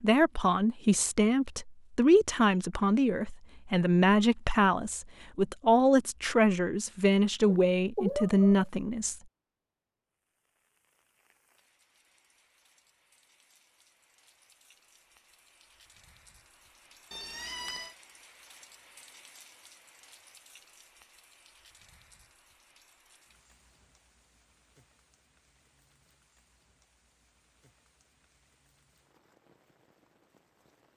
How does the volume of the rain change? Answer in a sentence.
The volume of the rain goes up, then down.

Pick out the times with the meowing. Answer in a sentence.
The meowing can be heard from 7.5 to 8.7 s and from 17.1 to 17.9 s.